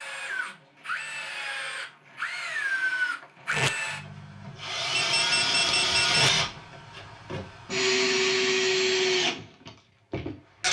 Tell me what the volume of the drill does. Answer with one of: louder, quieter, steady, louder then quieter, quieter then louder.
louder.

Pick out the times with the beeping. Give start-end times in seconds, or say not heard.
4.9-6.3.